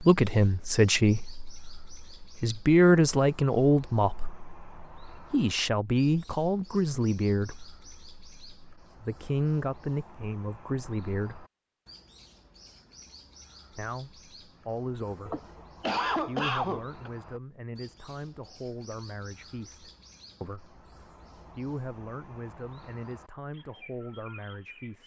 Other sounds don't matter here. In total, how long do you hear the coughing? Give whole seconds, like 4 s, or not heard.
2 s.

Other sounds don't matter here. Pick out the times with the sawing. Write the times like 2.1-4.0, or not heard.
not heard.